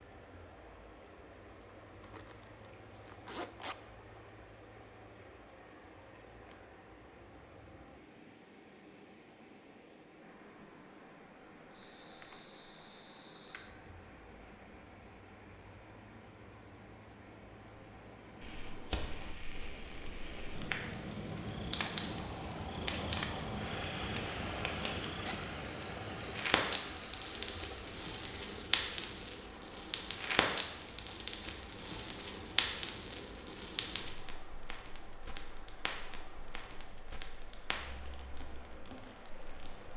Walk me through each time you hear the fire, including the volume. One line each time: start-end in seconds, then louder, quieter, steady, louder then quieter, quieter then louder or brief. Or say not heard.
18.4-39.9 quieter.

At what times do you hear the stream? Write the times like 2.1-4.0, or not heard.
0.0-39.9.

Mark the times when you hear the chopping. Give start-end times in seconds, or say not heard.
not heard.